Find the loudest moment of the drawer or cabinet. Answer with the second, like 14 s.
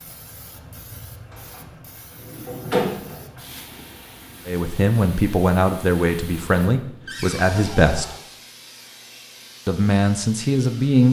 3 s.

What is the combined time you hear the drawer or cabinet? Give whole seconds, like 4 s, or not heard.
3 s.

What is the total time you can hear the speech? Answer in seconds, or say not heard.
5 s.